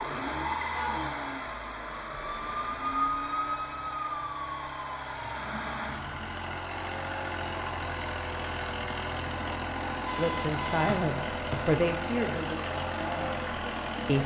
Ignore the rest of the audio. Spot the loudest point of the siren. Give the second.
3 s.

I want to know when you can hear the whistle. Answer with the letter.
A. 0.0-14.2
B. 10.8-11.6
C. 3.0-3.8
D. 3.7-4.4
B.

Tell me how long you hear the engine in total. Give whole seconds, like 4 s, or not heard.
14 s.